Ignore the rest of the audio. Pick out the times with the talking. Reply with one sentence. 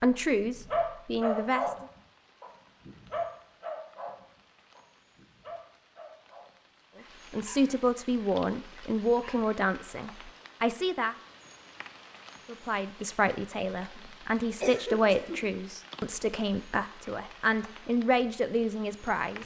You can hear the talking from 0.0 to 1.6 s, from 7.3 to 11.2 s and from 12.4 to 19.4 s.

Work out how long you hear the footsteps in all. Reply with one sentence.
The footsteps can't be heard in this clip.